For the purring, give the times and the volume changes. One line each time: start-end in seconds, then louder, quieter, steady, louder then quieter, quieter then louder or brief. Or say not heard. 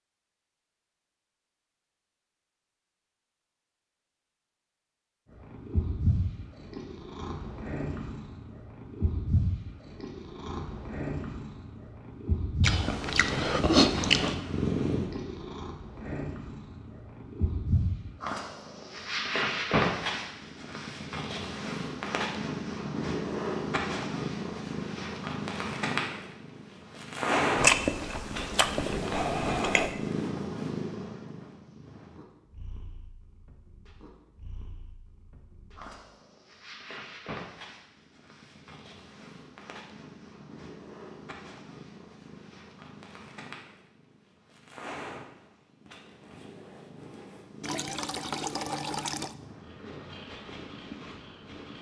5.3-51.7 quieter.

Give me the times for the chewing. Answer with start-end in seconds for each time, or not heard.
12.6-14.3, 27.6-29.9.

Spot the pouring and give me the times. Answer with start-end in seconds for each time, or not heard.
47.6-49.4.